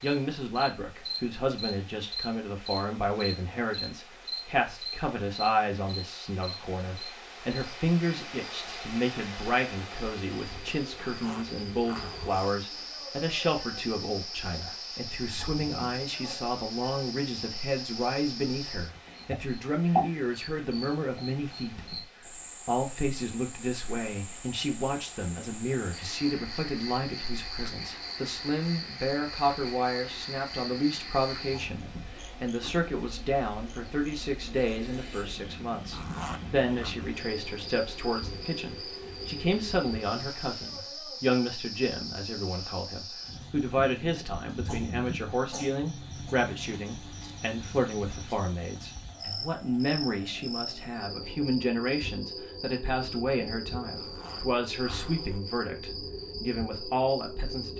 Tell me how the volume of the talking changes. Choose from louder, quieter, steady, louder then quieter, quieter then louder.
steady.